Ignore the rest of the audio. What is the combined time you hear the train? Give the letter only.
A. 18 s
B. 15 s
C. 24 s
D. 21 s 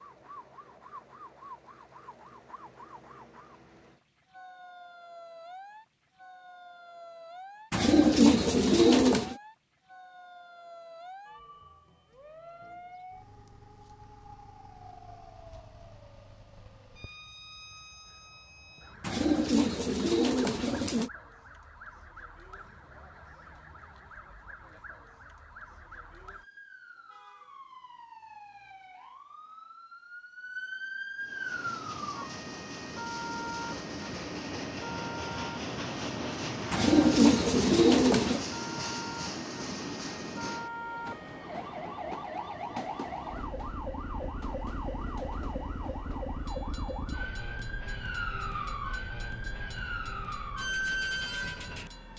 D.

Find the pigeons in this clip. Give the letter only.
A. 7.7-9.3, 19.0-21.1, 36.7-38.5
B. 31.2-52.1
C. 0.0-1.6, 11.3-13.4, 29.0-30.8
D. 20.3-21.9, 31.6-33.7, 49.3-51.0
A.